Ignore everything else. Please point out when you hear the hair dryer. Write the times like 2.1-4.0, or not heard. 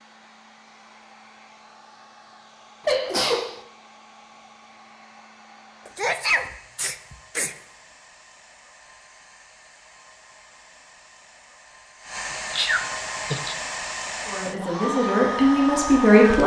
0.0-16.4.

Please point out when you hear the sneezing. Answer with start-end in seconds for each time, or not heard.
2.9-3.6, 5.8-7.5, 12.5-13.6.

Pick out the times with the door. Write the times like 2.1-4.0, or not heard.
not heard.